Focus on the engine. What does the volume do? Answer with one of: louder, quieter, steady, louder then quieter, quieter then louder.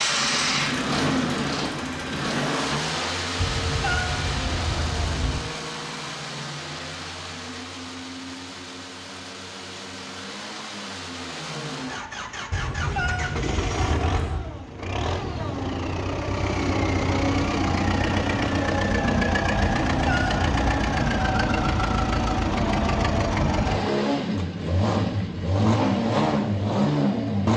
quieter then louder.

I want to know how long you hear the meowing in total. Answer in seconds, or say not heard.
5 s.